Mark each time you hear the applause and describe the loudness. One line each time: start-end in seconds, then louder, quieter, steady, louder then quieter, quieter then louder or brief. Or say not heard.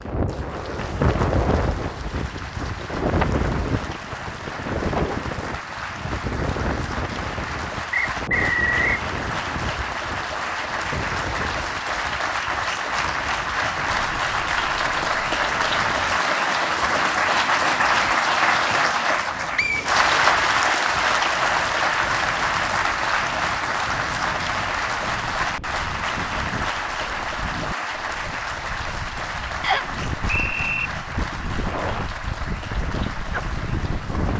0.0-34.3 louder then quieter.